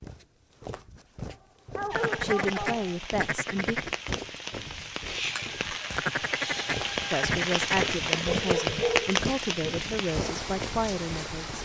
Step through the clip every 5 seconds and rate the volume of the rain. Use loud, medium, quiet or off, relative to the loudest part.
medium, loud, medium.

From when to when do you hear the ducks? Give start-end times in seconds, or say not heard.
1.9-4.0, 6.0-8.0.